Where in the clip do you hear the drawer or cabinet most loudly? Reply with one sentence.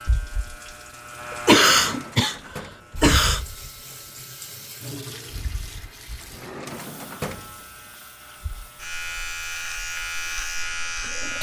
The volume of the drawer or cabinet peaks at 7 seconds.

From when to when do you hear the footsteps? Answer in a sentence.
You can't hear the footsteps here.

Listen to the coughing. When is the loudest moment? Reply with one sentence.
The loudest moment of the coughing is at 2 seconds.